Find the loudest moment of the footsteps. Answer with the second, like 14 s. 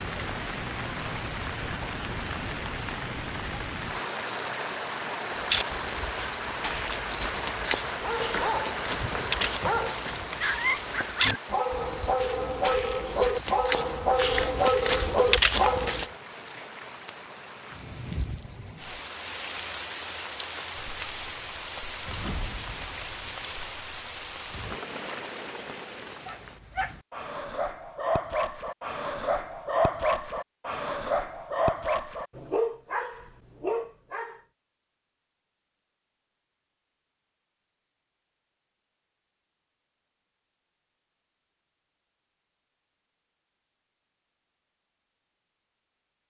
15 s.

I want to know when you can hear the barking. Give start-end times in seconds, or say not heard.
8.0-16.1, 26.2-34.4.